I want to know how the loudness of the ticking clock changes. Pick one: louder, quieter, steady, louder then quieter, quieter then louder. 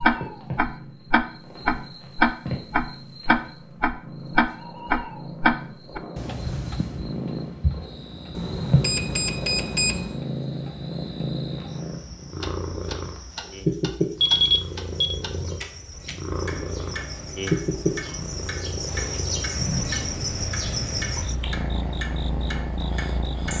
quieter.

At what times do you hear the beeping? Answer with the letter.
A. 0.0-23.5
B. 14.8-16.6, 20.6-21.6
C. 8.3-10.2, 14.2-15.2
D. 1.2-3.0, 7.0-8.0
C.